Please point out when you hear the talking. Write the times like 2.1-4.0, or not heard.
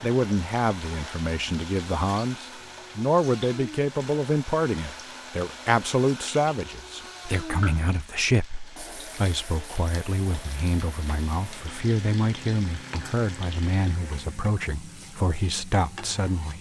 0.0-16.5.